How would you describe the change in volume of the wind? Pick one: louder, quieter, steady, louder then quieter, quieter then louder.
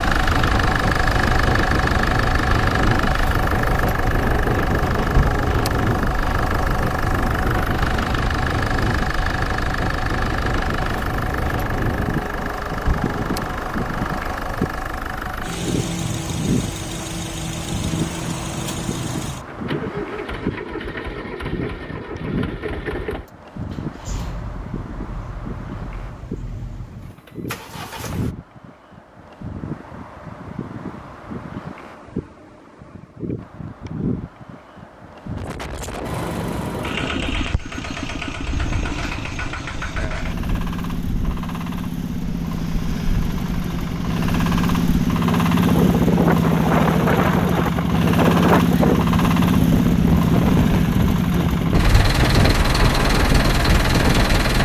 quieter then louder.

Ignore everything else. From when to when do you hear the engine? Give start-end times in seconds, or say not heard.
0.0-28.4, 36.0-54.6.